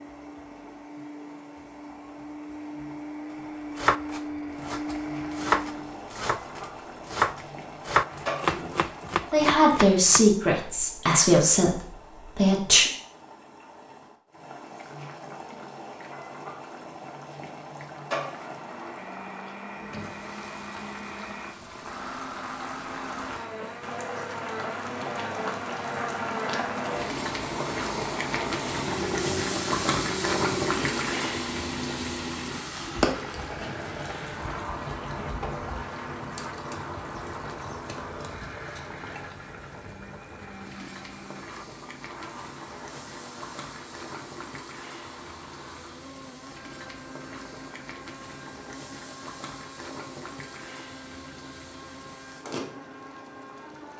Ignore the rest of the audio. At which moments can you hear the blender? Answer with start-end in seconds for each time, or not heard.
0.0-6.0, 18.2-53.9.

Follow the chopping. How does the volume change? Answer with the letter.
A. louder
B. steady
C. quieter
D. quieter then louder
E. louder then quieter
E.